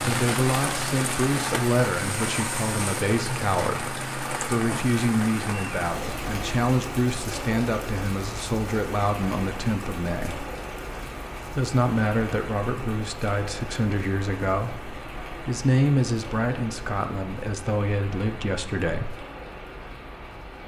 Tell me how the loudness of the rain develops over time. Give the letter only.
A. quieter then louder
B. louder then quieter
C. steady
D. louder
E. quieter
E.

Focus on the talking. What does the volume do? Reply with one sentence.
The loudness of the talking stays about the same.